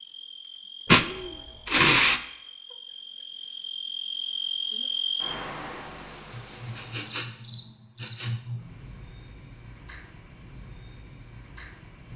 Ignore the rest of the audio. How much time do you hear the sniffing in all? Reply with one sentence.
The sniffing can be heard for 4 seconds in total.